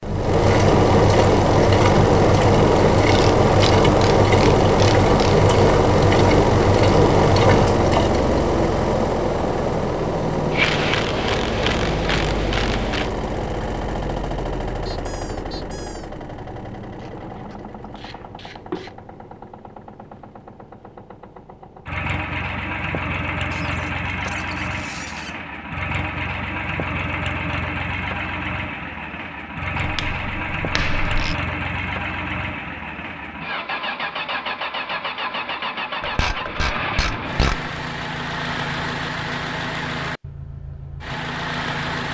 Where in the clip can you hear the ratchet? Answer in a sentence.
You can hear the ratchet from 3.1 to 5.5 s, from 10.5 to 13.1 s, from 16.9 to 18.9 s, from 29.8 to 31.4 s and from 36.0 to 37.7 s.